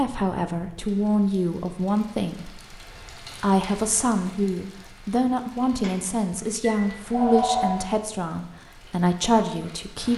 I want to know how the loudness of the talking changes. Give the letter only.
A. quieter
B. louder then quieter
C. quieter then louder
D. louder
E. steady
E.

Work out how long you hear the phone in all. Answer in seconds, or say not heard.
2 s.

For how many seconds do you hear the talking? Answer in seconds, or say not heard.
10 s.